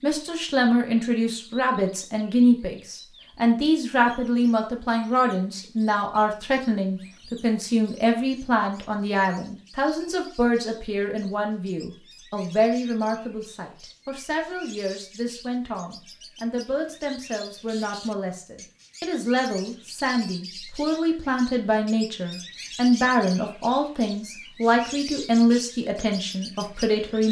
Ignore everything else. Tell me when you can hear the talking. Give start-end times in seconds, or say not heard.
0.0-27.2.